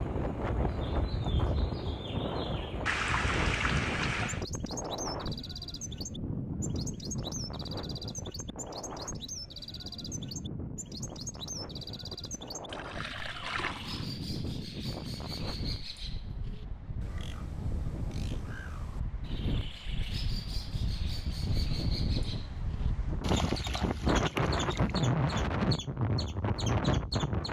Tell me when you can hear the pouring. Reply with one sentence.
The pouring can be heard from 2.9 to 4.5 s, from 12.7 to 14.2 s and from 23.2 to 25.0 s.